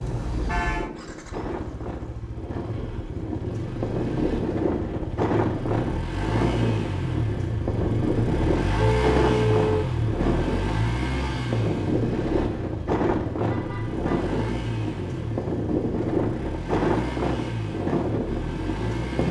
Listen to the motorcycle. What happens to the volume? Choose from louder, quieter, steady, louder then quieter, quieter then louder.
louder then quieter.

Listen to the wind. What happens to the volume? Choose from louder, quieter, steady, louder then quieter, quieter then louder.
louder.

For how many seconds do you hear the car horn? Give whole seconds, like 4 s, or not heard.
3 s.